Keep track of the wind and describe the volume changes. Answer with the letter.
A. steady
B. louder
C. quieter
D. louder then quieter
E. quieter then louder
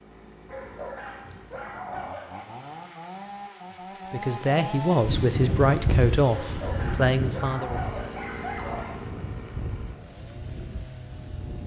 C.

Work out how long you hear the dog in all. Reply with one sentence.
The dog can be heard for 5 seconds in total.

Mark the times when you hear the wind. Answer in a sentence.
You can hear the wind from 5.0 to 11.6 s.